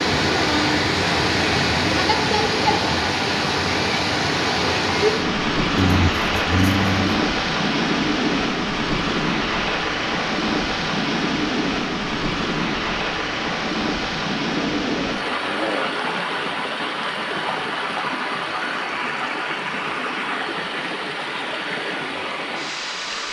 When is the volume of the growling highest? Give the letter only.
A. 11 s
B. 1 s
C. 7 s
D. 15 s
C.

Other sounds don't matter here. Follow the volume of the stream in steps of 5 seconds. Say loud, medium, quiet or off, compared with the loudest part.
loud, loud, loud, medium, medium.